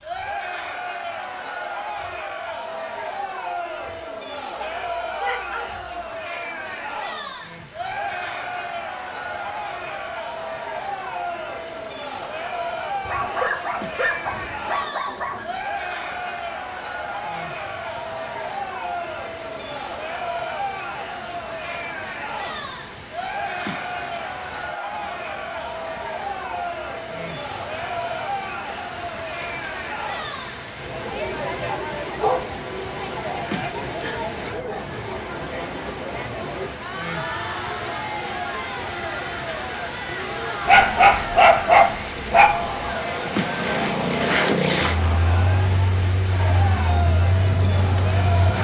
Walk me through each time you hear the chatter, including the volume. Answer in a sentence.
The chatter can be heard from 0.0 to 48.5 s, at a steady volume.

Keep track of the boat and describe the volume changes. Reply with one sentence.
The volume of the boat goes down.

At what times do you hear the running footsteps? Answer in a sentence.
The running footsteps can't be heard in this clip.